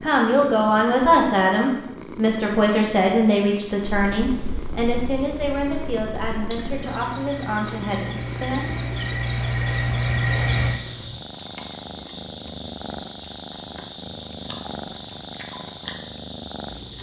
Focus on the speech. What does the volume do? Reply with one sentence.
The volume of the speech goes down.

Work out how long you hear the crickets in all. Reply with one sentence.
You can hear the crickets for 17 seconds altogether.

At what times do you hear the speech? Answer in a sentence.
The speech can be heard from 0.0 to 8.8 s.